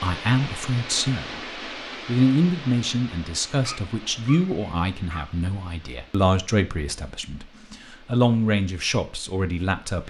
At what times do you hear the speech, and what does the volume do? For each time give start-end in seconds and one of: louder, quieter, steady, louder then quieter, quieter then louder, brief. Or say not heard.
0.0-1.4 brief
2.0-10.0 quieter then louder.